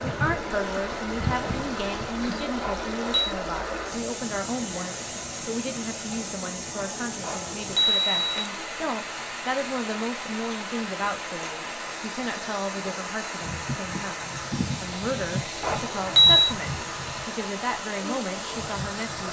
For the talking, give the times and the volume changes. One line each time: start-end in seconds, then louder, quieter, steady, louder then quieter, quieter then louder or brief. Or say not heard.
0.0-19.2 steady.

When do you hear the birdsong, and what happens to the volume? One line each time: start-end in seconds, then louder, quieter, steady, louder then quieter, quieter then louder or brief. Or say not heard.
not heard.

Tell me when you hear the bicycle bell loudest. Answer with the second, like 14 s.
16 s.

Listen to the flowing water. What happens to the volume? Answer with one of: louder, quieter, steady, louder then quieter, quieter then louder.
steady.